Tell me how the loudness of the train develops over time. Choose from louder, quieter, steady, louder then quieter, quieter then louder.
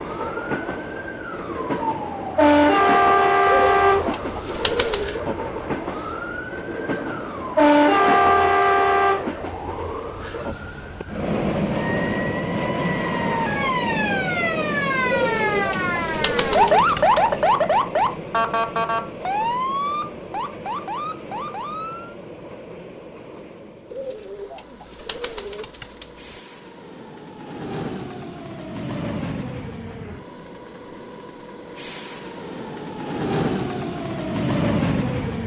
quieter then louder.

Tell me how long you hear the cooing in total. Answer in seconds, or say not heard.
7 s.